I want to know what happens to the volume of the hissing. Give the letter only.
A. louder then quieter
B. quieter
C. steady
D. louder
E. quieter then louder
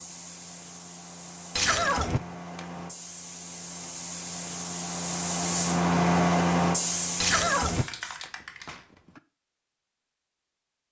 A.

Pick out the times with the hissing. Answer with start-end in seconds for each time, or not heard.
0.0-8.8.